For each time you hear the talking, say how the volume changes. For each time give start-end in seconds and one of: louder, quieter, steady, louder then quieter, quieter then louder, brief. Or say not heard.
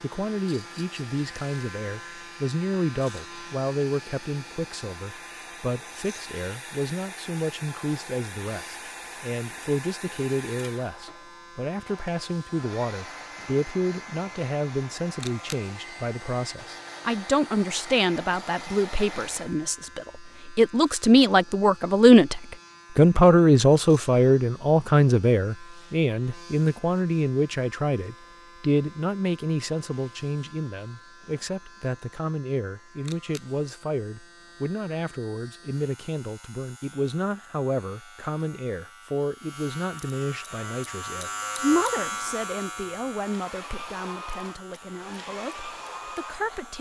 0.0-46.7 louder then quieter.